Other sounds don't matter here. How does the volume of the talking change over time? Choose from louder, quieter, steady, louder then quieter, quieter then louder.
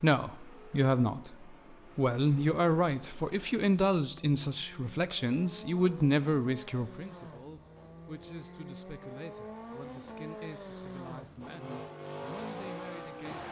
quieter.